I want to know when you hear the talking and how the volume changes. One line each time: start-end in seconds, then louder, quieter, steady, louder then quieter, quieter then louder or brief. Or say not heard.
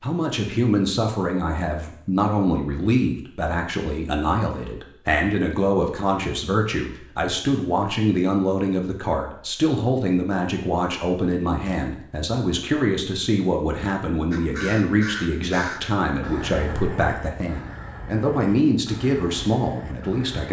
0.0-20.4 steady.